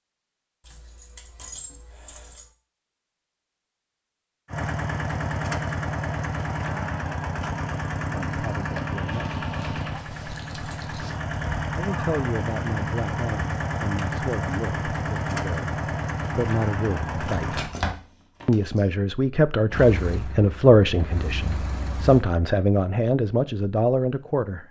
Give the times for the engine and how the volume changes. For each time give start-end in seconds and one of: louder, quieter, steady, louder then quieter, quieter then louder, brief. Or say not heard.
4.5-17.7 steady
19.7-22.2 brief.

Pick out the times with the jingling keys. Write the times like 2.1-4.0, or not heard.
0.6-2.5, 9.1-11.1, 17.4-18.8.